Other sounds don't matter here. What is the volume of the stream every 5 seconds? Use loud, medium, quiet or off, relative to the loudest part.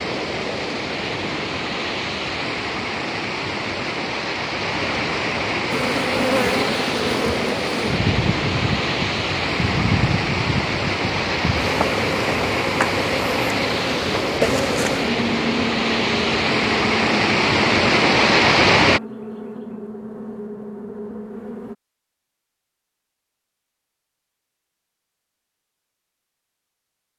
medium, medium, medium, loud, off, off.